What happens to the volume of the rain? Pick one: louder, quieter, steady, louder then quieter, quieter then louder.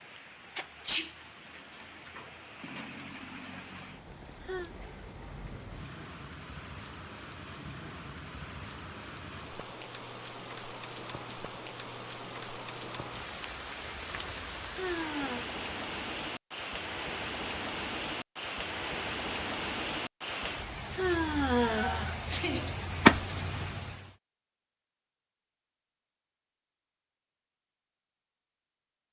louder.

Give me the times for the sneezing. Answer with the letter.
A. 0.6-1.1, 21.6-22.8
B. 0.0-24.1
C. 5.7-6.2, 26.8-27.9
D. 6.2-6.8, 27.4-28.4
A.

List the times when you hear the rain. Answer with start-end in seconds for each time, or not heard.
0.0-24.1.